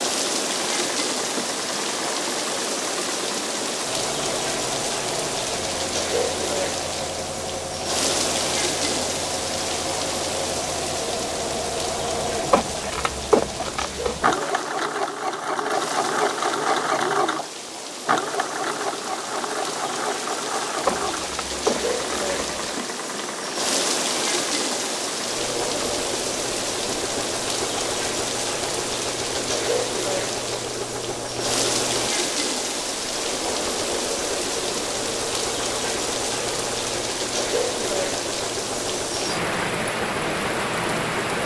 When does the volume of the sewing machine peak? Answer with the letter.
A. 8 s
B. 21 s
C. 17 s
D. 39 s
C.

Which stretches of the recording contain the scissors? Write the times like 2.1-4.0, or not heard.
12.5-14.2, 20.9-22.6.